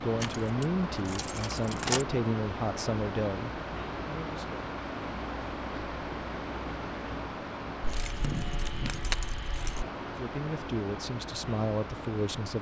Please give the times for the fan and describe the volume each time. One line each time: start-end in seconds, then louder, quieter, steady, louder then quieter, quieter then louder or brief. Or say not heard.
0.0-12.5 steady.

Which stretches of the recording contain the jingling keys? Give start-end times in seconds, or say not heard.
0.2-2.0, 7.8-9.8.